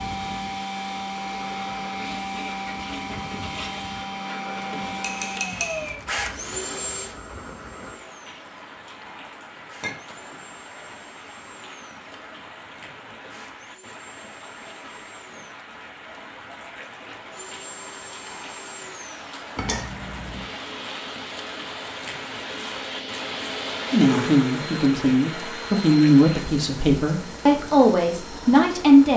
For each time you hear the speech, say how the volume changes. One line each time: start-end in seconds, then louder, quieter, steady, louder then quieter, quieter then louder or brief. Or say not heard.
23.9-29.1 steady.